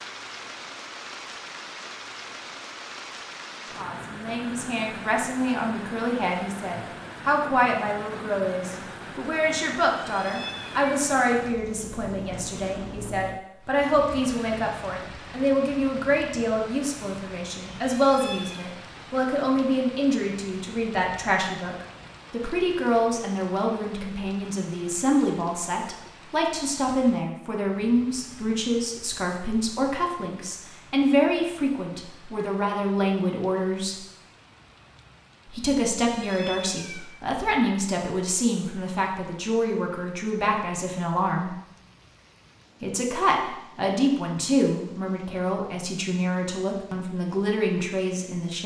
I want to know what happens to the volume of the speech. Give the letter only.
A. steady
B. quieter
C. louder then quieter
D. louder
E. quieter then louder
A.